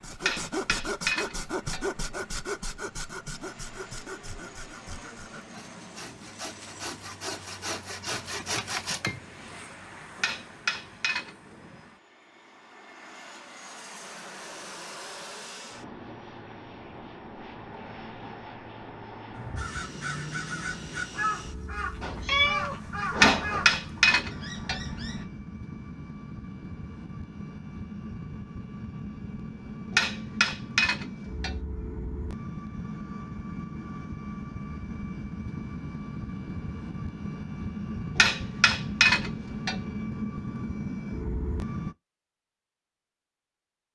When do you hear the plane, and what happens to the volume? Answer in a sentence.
You can hear the plane from 0.0 to 42.0 s, getting louder.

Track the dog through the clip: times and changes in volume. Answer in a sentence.
The dog can't be heard in this clip.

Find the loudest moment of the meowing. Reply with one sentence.
The loudest moment of the meowing is at 22 seconds.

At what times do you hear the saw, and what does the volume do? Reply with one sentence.
You can hear the saw from 0.0 to 9.2 s, getting quieter then louder.